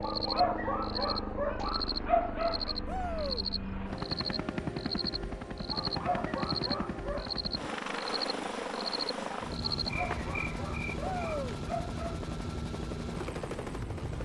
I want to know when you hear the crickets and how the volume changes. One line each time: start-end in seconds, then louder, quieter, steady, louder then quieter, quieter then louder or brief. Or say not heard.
0.0-11.6 steady.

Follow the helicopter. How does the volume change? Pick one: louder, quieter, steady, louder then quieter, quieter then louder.
steady.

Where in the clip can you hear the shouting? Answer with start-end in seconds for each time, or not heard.
2.9-3.5, 10.9-11.6.